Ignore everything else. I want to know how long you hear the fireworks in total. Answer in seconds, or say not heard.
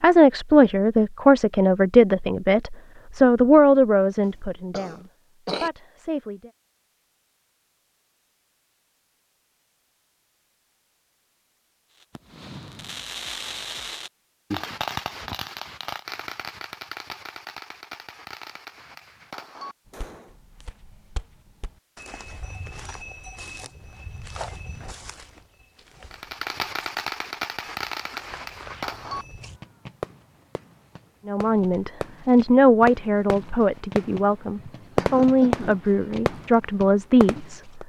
20 s.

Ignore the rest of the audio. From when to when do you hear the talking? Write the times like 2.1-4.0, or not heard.
0.0-6.5, 31.2-37.6.